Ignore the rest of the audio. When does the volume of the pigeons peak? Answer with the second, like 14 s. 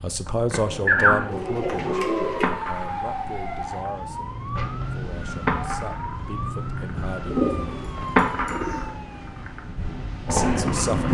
1 s.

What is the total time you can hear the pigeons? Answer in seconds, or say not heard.
3 s.